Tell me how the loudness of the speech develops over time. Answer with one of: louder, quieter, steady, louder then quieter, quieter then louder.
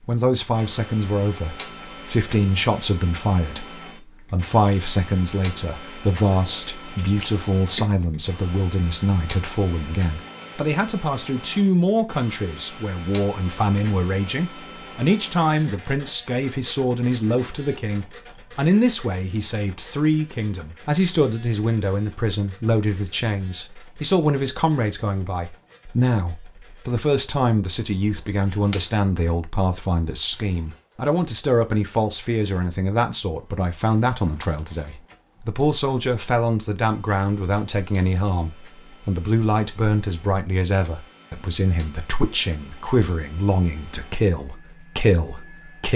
steady.